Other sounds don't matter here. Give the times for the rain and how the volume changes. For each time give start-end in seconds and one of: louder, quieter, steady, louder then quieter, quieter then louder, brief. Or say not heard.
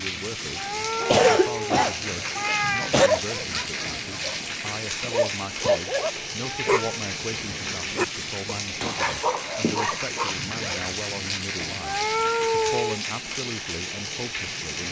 0.0-14.8 steady.